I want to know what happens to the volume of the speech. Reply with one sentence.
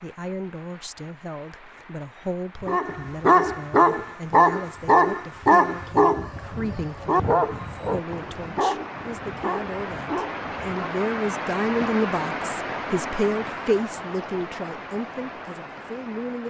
The loudness of the speech goes up.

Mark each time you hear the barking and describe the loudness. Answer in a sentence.
You can hear the barking from 2.6 to 11.0 s, getting quieter.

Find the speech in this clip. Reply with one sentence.
The speech can be heard from 0.0 to 16.4 s.